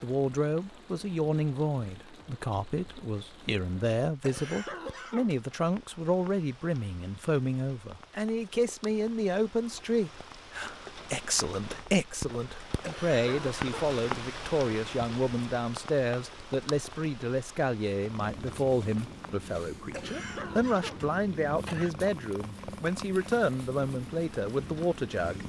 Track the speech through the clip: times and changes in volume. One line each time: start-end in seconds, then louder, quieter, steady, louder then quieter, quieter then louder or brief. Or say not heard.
0.0-25.4 steady.